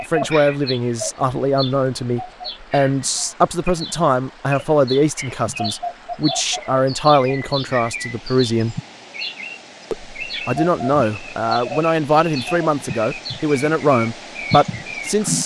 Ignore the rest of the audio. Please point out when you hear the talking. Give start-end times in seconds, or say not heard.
0.1-8.8, 9.9-15.4.